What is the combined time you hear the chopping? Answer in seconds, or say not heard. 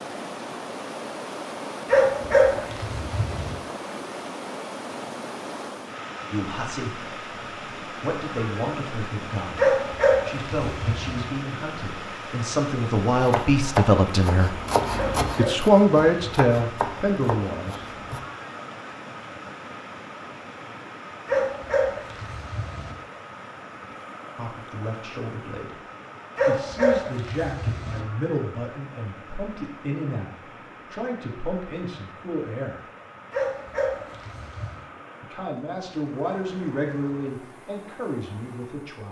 5 s.